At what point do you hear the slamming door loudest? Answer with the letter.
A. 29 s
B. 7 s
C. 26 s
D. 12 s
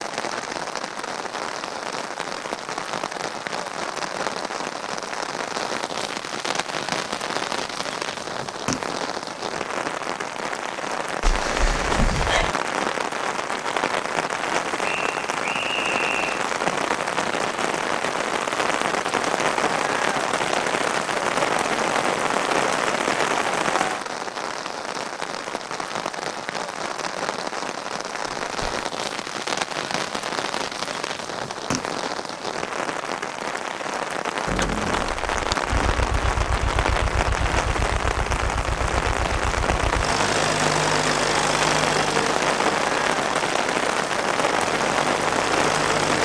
D.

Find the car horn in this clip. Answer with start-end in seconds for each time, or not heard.
not heard.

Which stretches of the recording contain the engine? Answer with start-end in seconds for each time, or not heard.
34.5-46.2.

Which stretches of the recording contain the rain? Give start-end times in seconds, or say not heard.
0.0-46.2.